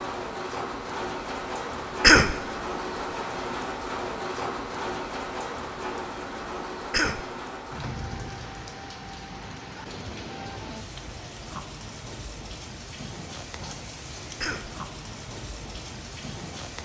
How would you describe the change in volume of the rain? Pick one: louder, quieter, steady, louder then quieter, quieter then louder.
quieter.